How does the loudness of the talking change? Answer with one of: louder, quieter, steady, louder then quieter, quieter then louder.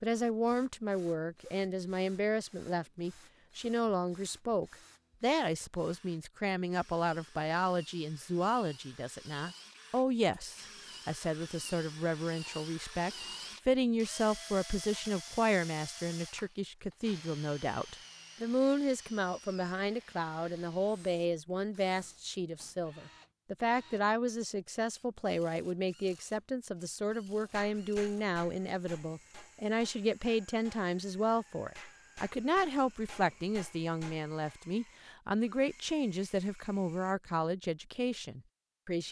steady.